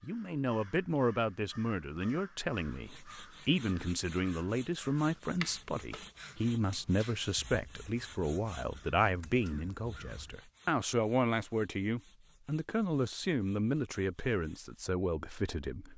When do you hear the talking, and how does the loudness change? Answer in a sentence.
You can hear the talking from 0.0 to 15.9 s, at a steady volume.